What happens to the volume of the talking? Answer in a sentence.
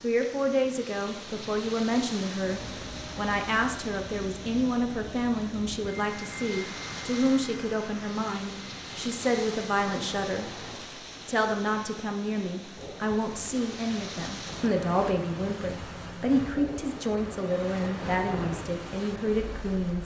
The loudness of the talking stays about the same.